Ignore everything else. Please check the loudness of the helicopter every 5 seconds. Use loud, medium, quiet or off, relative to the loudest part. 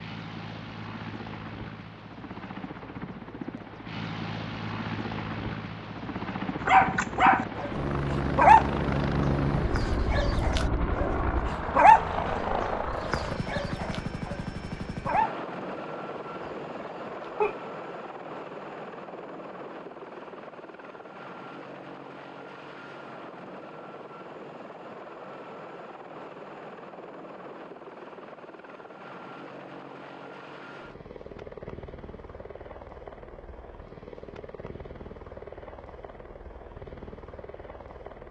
medium, loud, loud, medium, quiet, quiet, quiet, quiet.